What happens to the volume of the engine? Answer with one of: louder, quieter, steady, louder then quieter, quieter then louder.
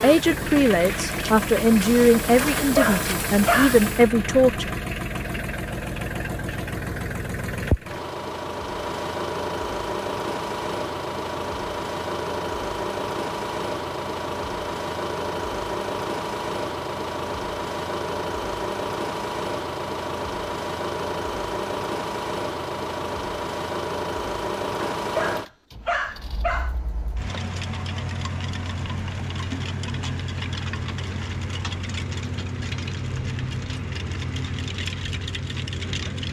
steady.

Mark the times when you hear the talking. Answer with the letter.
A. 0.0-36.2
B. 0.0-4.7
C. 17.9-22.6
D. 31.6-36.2
B.